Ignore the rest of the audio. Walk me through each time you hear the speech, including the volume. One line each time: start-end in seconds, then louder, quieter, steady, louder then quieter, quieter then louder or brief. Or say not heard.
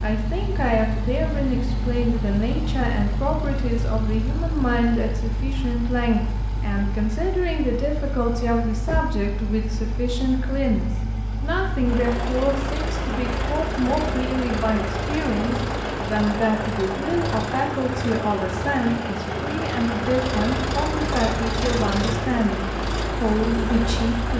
0.0-24.3 steady.